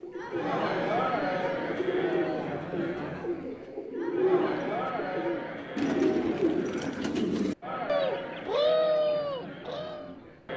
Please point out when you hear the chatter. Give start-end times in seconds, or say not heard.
0.1-10.5.